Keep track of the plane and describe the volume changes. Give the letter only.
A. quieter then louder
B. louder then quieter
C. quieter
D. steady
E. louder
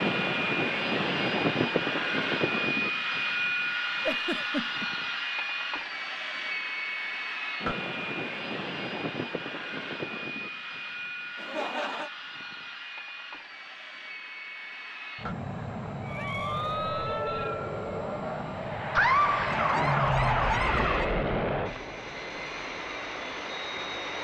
A.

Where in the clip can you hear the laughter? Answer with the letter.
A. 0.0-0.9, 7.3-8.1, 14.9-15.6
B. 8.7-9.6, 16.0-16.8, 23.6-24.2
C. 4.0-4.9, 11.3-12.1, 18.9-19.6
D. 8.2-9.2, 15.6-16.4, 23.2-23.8
C.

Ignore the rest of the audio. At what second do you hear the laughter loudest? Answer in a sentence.
The loudest moment of the laughter is at 19 seconds.